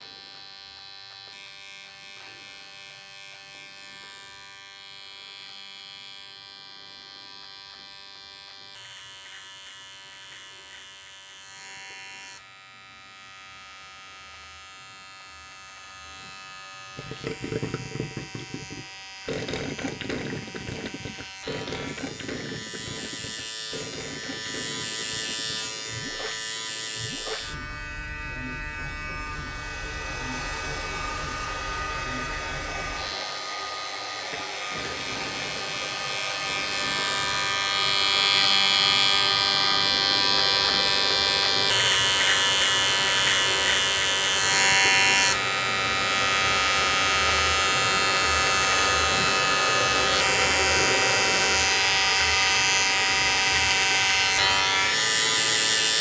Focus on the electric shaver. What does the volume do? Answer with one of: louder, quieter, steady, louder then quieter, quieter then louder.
louder.